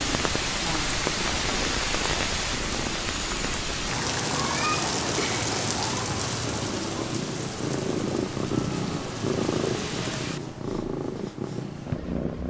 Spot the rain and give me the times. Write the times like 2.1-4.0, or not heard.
0.0-10.6.